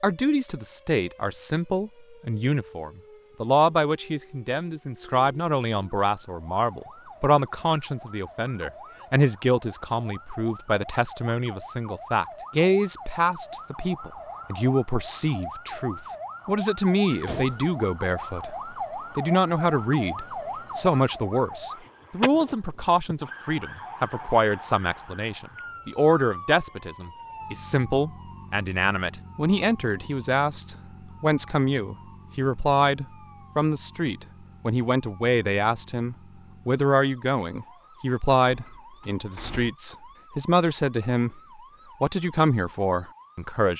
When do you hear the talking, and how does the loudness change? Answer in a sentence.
You can hear the talking from 0.0 to 41.4 s, at a steady volume; and briefly from 42.0 to 43.7 s.